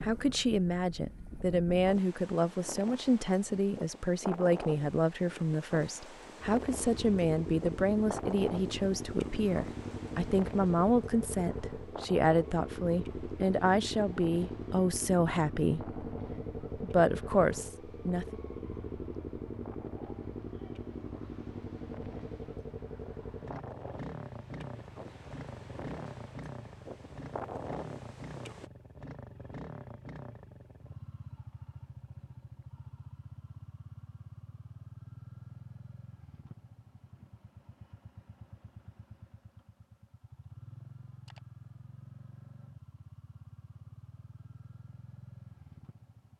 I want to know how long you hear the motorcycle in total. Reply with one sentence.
The motorcycle can be heard for 40 seconds in total.